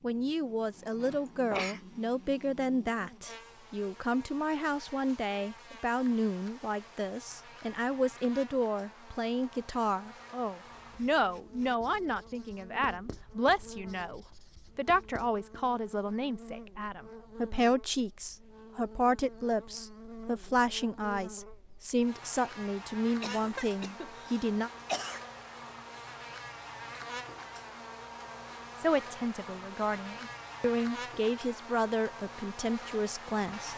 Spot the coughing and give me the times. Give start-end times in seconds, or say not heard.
1.0-1.8, 23.2-25.2.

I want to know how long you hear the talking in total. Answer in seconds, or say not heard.
30 s.